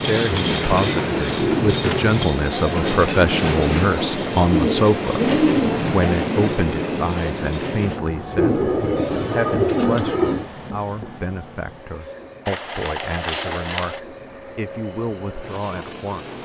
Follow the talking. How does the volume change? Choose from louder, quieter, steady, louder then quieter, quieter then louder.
quieter.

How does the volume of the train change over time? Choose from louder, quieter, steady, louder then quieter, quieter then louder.
quieter.